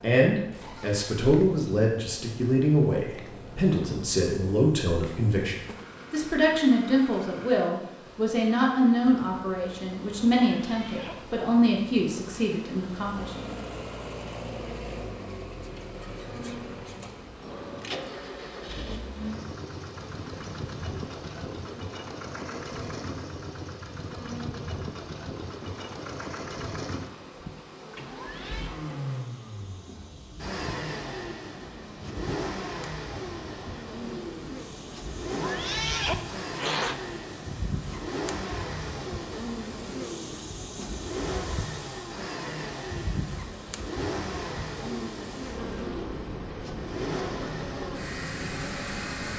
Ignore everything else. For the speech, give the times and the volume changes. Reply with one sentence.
You can hear the speech from 0.0 to 13.6 s, at a steady volume.